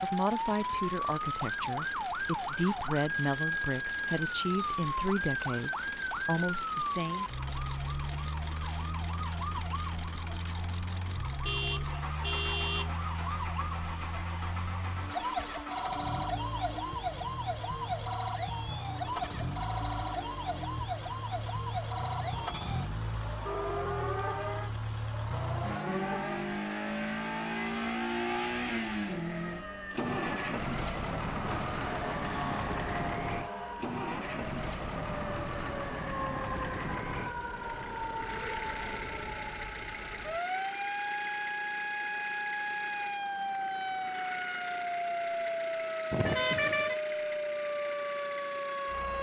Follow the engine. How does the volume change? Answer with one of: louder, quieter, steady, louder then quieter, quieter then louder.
louder then quieter.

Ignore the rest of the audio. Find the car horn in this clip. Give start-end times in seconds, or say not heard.
11.4-12.9, 23.4-24.5, 46.1-47.0.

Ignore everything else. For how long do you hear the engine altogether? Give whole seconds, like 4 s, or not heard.
49 s.